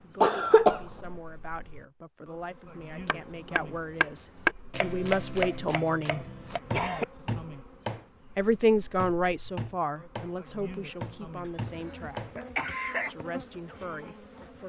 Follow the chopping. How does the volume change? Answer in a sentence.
The loudness of the chopping goes down.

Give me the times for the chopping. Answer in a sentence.
You can hear the chopping from 3.0 to 12.3 s.